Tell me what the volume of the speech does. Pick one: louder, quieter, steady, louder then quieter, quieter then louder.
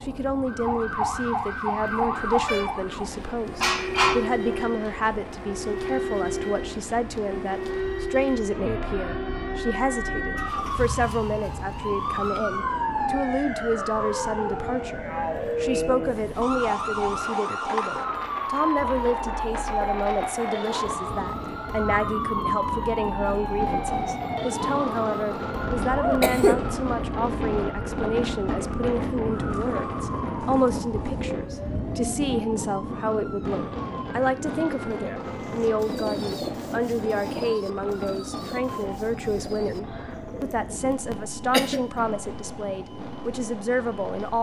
steady.